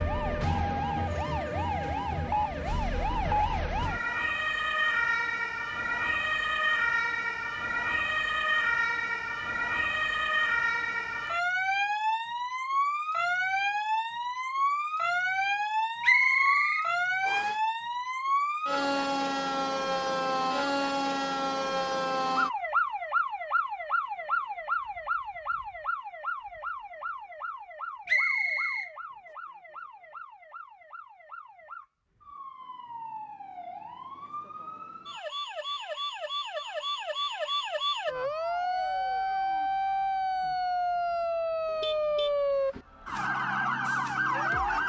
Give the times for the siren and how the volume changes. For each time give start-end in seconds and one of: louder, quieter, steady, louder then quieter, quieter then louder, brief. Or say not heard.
0.0-44.8 quieter then louder.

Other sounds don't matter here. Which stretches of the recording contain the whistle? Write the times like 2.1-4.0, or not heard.
16.0-17.6, 28.1-28.9.